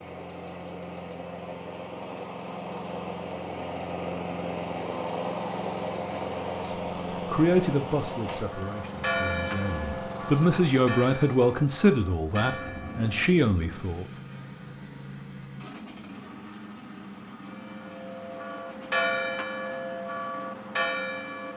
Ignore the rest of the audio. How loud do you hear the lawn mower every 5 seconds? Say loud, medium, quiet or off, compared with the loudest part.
loud, loud, medium, medium, medium.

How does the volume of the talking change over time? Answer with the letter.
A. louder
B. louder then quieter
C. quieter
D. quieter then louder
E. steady
D.